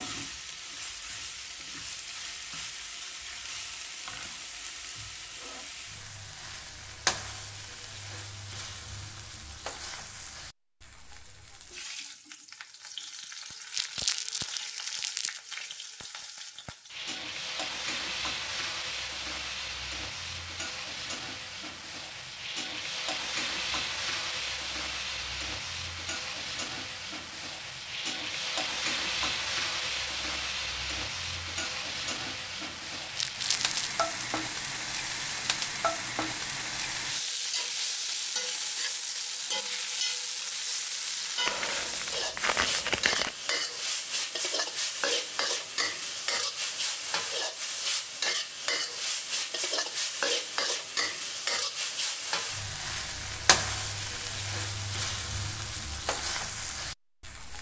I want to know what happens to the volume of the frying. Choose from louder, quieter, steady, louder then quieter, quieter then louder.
louder.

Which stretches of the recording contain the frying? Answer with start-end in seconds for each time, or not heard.
0.0-57.5.